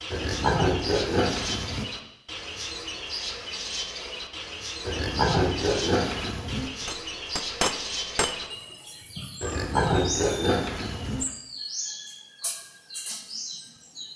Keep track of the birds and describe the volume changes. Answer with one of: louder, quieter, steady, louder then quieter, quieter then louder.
steady.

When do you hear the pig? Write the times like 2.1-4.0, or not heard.
0.1-1.9, 4.8-6.7, 9.4-11.2.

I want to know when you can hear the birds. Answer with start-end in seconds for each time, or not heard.
0.0-14.1.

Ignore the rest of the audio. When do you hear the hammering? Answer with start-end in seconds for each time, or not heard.
6.8-8.3.